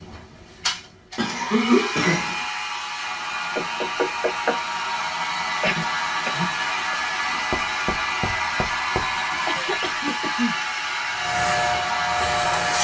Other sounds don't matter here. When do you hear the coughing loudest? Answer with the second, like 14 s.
2 s.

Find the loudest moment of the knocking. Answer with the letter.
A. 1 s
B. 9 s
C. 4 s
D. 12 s
C.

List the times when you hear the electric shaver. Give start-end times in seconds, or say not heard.
11.2-12.7.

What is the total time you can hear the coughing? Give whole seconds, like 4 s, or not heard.
4 s.